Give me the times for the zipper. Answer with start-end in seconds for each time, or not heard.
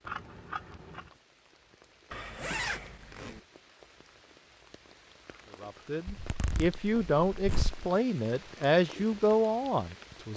2.1-3.4, 6.0-7.8.